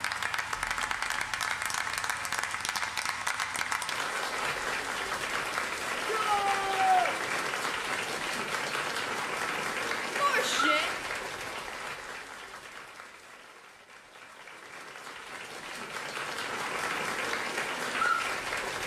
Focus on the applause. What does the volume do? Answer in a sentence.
The volume of the applause goes down, then up.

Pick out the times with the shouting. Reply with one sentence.
You can hear the shouting from 6.0 to 7.2 s and from 10.2 to 10.9 s.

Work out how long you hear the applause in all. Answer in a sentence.
The applause can be heard for 19 seconds in total.